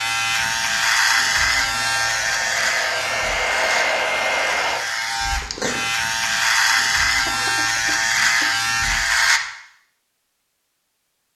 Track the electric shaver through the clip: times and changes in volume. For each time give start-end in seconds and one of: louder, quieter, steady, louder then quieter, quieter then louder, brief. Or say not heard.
0.0-9.4 quieter then louder.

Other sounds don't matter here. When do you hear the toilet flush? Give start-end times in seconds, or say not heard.
not heard.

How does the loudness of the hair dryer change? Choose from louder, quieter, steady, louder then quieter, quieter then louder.
louder.